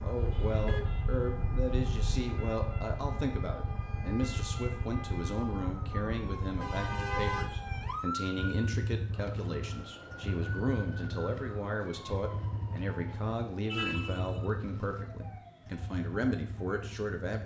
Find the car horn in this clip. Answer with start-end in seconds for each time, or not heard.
0.1-2.2, 6.6-7.5, 13.7-14.4.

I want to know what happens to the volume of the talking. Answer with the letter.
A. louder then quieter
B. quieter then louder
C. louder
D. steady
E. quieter
D.